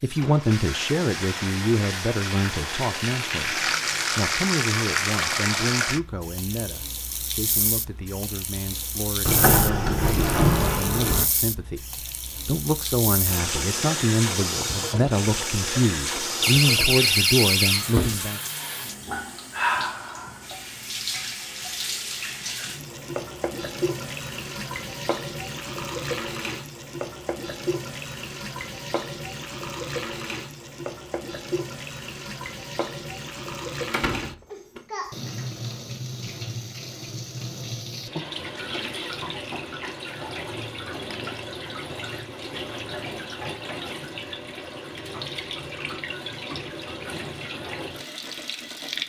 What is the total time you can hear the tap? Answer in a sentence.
You can hear the tap for 49 seconds altogether.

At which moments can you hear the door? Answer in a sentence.
The door can be heard from 9.2 to 11.2 s, from 16.4 to 18.1 s and from 33.9 to 34.8 s.